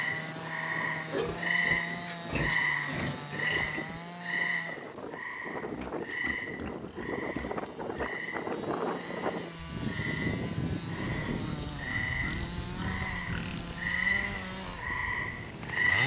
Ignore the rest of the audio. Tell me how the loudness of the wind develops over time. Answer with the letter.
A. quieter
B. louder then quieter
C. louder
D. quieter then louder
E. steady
B.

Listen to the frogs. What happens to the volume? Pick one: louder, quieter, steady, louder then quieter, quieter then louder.
quieter then louder.